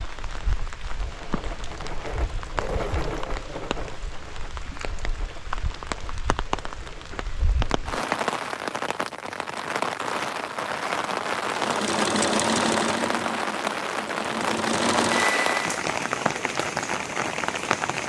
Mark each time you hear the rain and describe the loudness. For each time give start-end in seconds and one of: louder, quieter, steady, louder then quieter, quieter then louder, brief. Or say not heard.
0.0-18.0 louder.